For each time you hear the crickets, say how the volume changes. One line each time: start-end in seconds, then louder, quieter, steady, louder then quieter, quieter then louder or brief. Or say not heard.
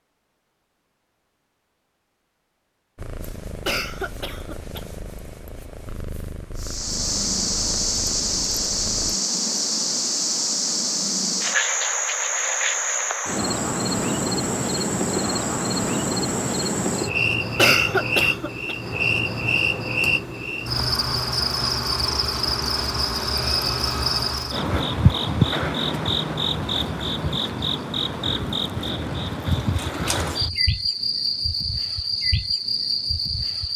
6.5-33.7 steady.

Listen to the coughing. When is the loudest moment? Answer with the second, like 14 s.
18 s.